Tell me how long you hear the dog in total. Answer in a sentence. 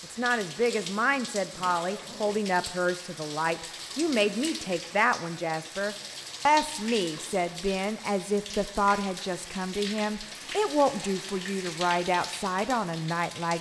The dog can't be heard in this clip.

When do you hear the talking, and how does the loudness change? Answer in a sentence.
The talking can be heard from 0.0 to 13.5 s, at a steady volume.